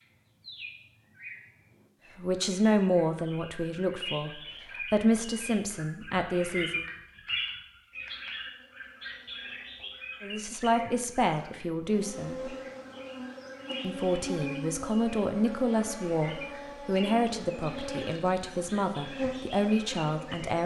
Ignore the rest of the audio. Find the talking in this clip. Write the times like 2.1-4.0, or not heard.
2.1-6.8, 10.2-12.6, 13.8-20.6.